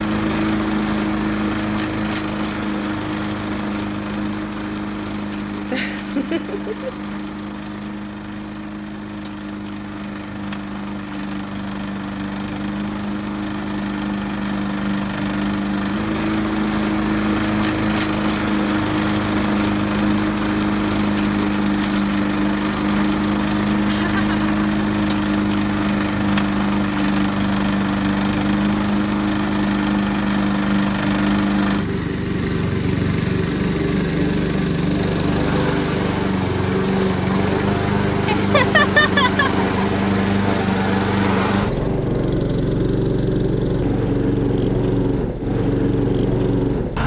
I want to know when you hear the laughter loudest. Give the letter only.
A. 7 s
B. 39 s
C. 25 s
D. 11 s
B.